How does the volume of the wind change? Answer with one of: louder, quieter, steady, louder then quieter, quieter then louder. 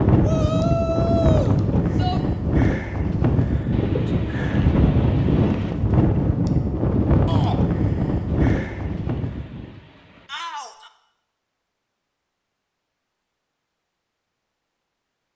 steady.